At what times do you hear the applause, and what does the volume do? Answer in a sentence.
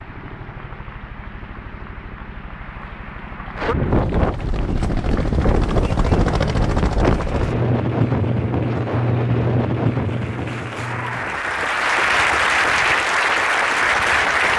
You can hear the applause from 0.0 to 14.5 s, getting louder.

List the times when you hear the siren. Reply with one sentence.
You can't hear the siren here.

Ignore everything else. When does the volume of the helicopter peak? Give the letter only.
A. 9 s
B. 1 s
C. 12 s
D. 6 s
D.